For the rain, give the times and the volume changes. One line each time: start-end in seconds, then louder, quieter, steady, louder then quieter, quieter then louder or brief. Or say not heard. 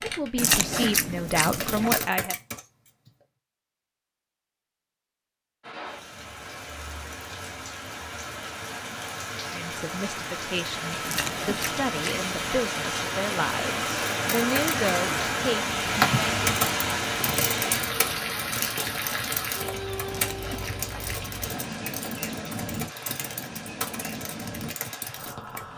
5.6-25.7 louder then quieter.